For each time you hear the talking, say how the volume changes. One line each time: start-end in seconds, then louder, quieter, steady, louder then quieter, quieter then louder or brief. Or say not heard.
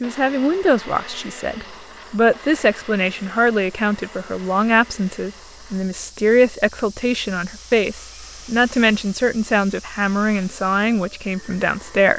0.0-12.1 steady.